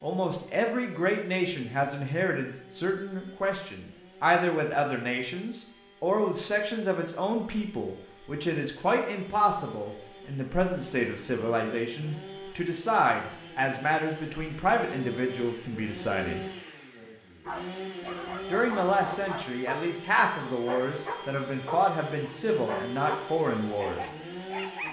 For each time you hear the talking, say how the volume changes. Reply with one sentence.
You can hear the talking from 0.0 to 16.4 s, at a steady volume; and from 18.5 to 24.1 s, at a steady volume.